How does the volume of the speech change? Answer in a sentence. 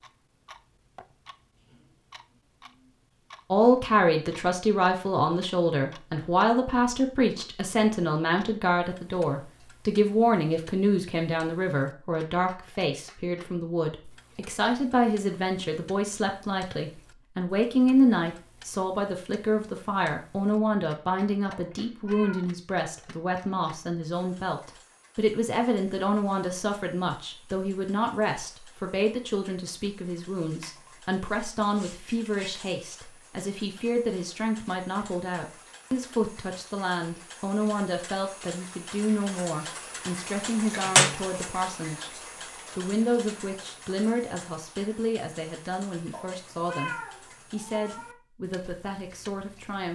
The loudness of the speech goes down.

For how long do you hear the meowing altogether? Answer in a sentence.
The meowing can be heard for 3 seconds in total.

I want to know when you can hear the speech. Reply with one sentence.
The speech can be heard from 3.5 to 42.1 s and from 42.8 to 49.9 s.